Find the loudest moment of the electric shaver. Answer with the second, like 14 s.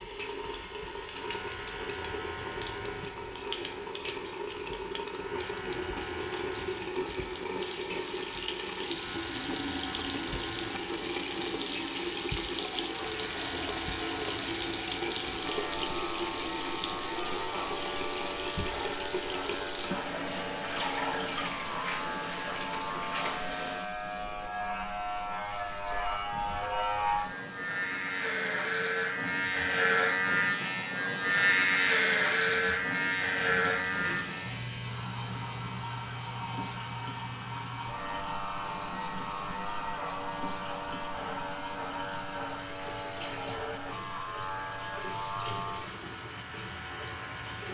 32 s.